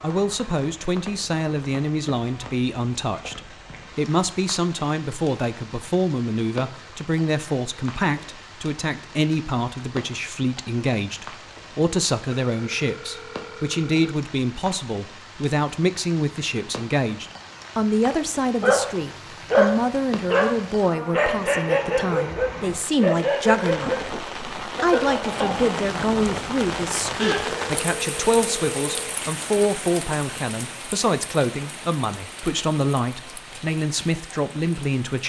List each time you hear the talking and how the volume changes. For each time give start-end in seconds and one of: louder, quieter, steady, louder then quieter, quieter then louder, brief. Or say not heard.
0.0-35.2 steady.